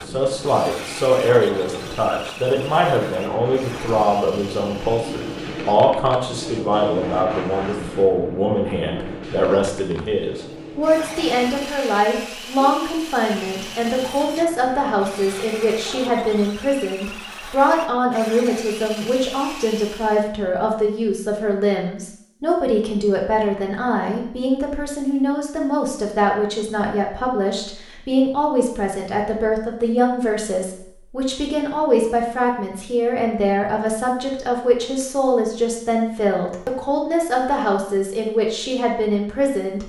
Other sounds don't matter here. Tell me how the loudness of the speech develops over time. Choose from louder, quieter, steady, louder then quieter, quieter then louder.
steady.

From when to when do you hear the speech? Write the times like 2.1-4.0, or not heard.
0.1-39.8.